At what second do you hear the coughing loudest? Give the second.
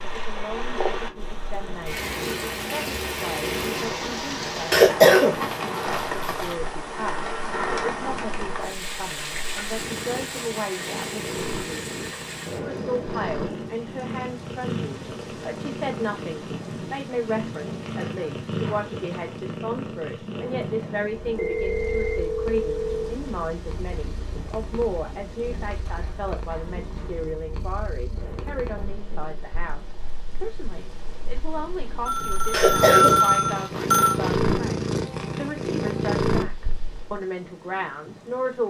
5 s.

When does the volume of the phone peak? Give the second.
33 s.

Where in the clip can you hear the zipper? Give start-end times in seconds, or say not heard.
not heard.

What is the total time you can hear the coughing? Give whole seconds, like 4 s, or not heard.
4 s.